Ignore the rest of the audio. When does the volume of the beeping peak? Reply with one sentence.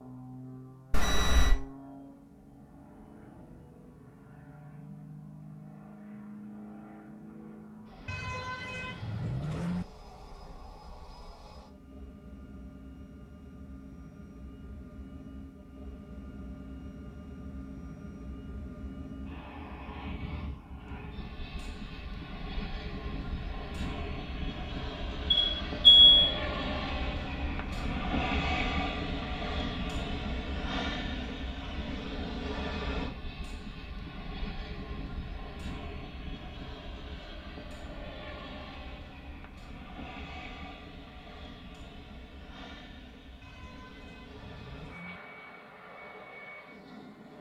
The loudest moment of the beeping is at 26 seconds.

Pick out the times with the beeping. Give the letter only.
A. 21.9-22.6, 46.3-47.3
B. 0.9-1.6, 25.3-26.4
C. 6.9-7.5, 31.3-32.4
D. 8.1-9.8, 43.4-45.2
B.